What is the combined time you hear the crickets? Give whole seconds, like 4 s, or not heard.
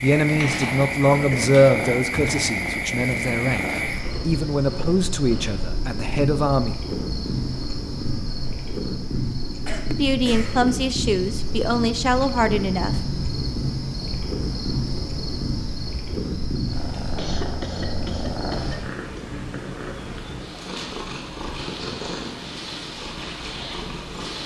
19 s.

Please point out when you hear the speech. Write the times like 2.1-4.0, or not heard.
0.0-6.8, 9.9-13.0.